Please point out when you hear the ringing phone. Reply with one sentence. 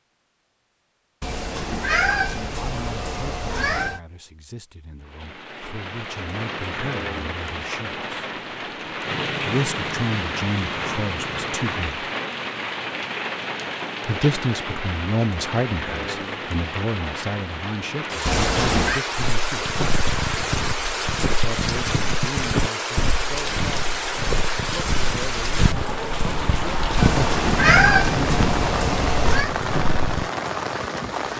The ringing phone can't be heard in this clip.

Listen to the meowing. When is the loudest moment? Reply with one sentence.
The volume of the meowing peaks at 28 seconds.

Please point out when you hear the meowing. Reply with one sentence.
You can hear the meowing from 1.2 to 4.0 s, from 18.2 to 19.0 s and from 26.9 to 29.5 s.